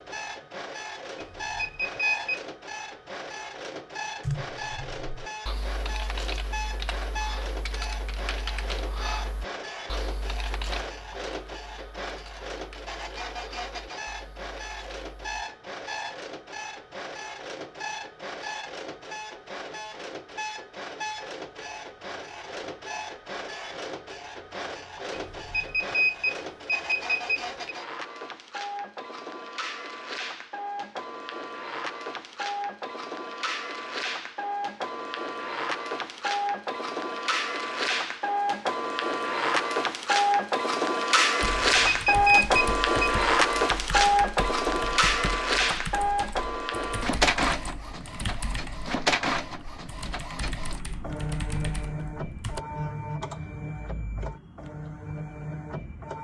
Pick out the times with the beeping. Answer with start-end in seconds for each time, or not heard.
1.1-2.4, 25.1-27.8, 41.5-43.1.